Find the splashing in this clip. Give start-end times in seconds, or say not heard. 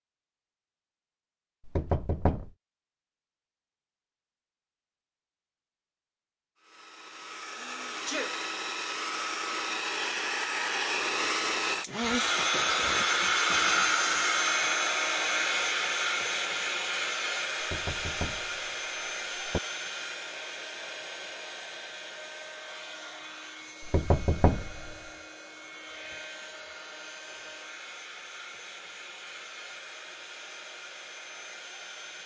not heard.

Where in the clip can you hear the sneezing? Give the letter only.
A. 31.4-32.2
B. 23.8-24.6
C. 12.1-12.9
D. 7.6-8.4
D.